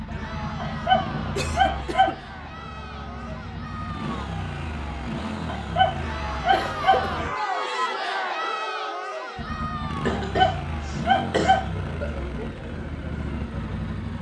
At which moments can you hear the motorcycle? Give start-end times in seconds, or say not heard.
0.0-7.3, 9.3-14.1.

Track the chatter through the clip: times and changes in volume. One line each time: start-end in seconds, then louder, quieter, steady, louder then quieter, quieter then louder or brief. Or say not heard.
0.0-14.1 louder then quieter.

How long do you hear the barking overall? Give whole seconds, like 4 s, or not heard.
5 s.